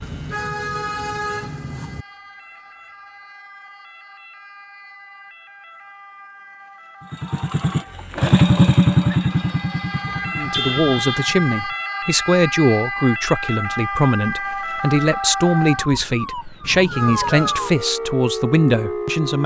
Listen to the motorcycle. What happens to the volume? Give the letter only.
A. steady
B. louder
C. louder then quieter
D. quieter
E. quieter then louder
C.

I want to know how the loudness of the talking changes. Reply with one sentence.
The volume of the talking stays about the same.